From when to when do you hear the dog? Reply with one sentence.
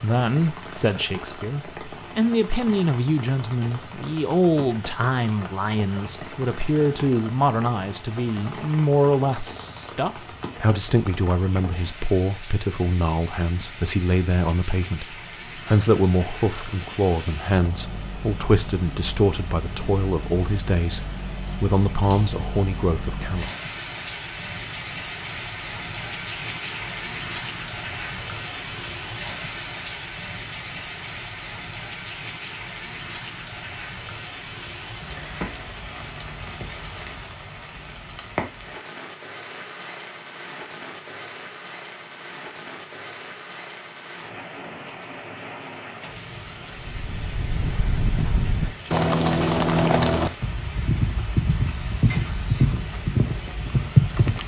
The dog can't be heard in this clip.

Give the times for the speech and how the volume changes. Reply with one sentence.
The speech can be heard from 0.0 to 23.5 s, at a steady volume.